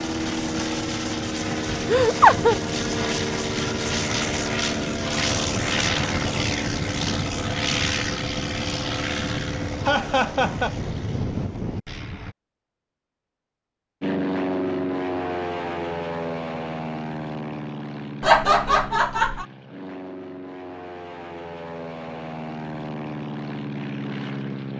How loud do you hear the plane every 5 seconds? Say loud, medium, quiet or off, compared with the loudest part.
loud, loud, loud, medium, medium.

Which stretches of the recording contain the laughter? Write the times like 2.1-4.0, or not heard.
1.9-2.5, 9.8-10.8, 18.2-19.4.